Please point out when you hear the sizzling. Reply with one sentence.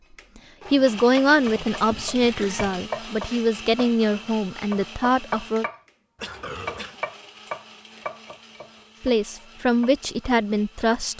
The sizzling can't be heard in this clip.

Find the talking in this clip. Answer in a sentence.
You can hear the talking from 0.7 to 5.7 s and from 9.0 to 11.1 s.